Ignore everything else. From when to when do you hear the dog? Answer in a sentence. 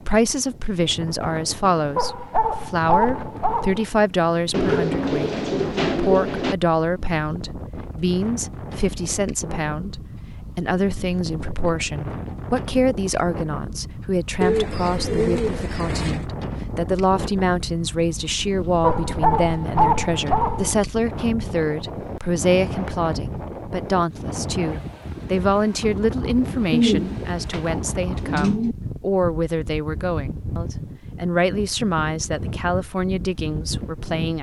The dog can be heard from 1.9 to 3.9 s and from 18.8 to 20.7 s.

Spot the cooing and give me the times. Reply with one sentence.
The cooing can be heard from 4.5 to 6.5 s, from 14.4 to 16.2 s and from 26.7 to 28.8 s.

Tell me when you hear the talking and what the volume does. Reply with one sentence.
The talking can be heard from 0.1 to 34.3 s, at a steady volume.